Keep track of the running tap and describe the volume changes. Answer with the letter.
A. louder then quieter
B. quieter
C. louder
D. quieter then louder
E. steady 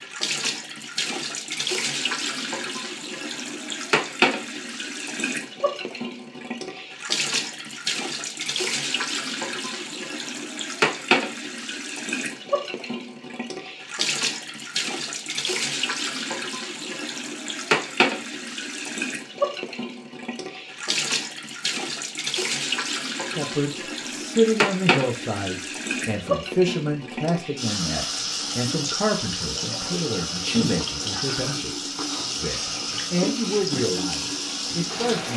E.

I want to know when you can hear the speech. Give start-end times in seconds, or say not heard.
23.2-35.3.